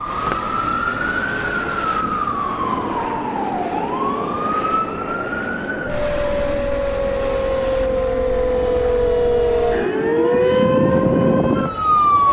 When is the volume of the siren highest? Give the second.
11 s.